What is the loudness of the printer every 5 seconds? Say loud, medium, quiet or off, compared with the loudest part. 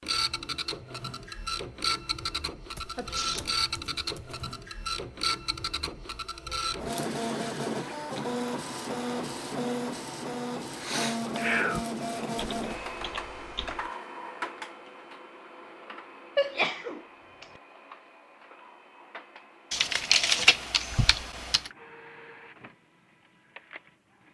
loud, loud, loud, quiet, quiet.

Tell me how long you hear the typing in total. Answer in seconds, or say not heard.
5 s.